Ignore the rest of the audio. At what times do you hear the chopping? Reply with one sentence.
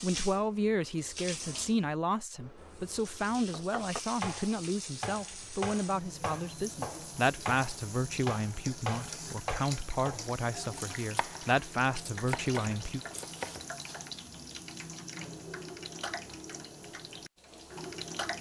The chopping can be heard from 3.5 to 13.7 s.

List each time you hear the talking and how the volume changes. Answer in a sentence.
You can hear the talking from 0.0 to 13.0 s, at a steady volume.